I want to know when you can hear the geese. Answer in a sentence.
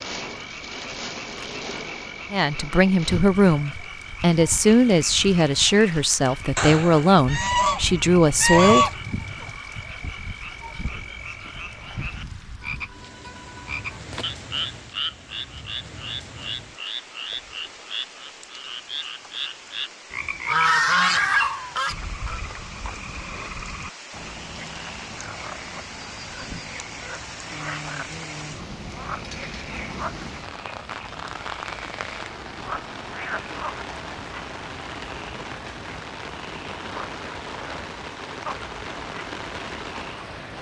The geese can be heard from 6.5 to 9.5 s and from 20.4 to 22.4 s.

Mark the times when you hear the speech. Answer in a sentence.
You can hear the speech from 2.3 to 8.9 s.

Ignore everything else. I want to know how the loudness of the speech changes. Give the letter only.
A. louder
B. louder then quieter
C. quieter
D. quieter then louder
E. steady
E.